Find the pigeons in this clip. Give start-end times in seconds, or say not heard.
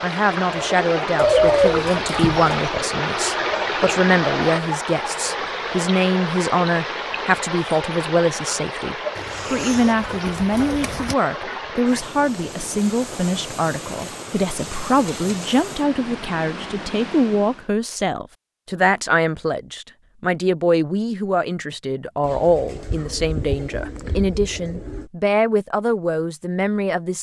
1.1-2.6, 9.2-11.2, 22.2-25.1.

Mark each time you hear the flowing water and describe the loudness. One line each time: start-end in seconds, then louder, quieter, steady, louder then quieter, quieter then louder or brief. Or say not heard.
0.0-17.7 quieter.